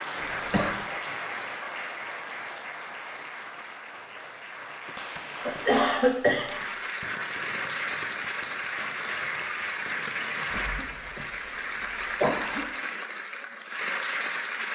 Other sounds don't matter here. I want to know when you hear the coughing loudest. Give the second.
6 s.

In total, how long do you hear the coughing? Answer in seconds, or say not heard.
3 s.